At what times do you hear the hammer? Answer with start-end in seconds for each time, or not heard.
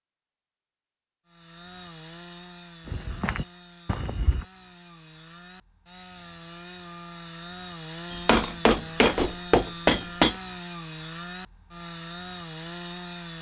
8.1-10.3.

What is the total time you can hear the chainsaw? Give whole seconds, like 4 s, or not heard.
12 s.